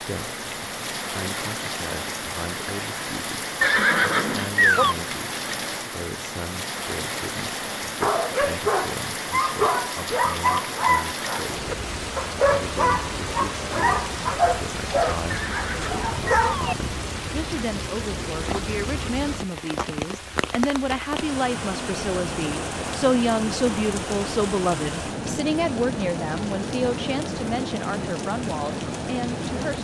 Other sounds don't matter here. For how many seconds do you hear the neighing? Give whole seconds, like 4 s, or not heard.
3 s.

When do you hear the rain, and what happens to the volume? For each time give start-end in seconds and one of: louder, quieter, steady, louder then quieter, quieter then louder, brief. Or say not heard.
0.0-29.7 steady.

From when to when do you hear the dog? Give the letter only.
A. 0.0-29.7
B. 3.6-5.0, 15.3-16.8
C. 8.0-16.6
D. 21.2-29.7
C.